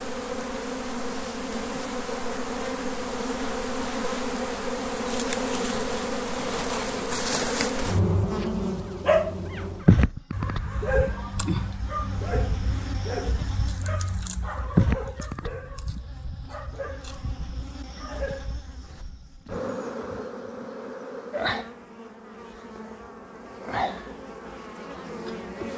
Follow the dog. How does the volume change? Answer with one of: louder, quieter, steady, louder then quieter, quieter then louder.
quieter.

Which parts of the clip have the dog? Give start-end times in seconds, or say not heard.
9.0-19.1.